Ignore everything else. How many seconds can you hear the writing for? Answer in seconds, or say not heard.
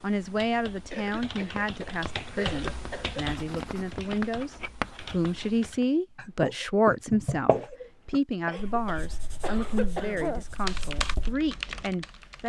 10 s.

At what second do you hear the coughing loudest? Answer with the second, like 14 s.
10 s.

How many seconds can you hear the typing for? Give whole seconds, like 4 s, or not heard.
8 s.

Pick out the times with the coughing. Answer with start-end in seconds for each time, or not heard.
0.9-3.2, 8.4-10.4.